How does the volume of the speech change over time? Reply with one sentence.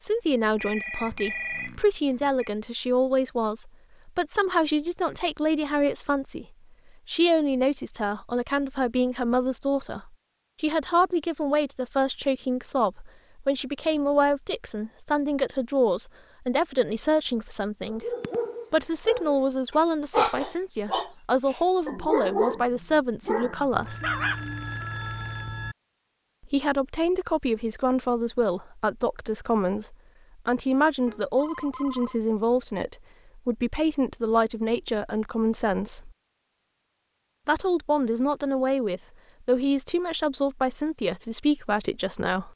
The loudness of the speech stays about the same.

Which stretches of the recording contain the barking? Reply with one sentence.
The barking can be heard from 17.8 to 24.6 s.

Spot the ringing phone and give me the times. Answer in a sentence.
The ringing phone can be heard from 0.6 to 2.5 s, from 23.7 to 25.8 s and from 31.1 to 32.2 s.